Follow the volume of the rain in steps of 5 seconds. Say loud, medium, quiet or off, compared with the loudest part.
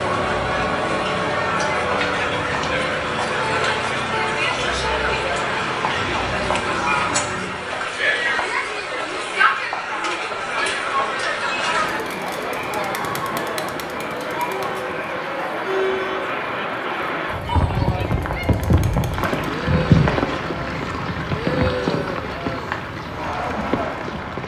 off, off, medium, loud, loud.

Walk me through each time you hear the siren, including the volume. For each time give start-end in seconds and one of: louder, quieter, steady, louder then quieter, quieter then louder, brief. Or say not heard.
0.0-7.9 steady.